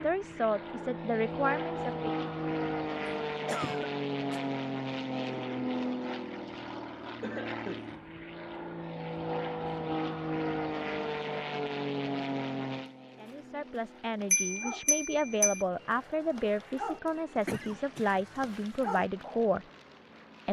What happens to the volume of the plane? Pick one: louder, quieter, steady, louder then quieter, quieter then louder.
quieter.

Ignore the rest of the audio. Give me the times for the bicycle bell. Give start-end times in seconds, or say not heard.
14.3-15.7.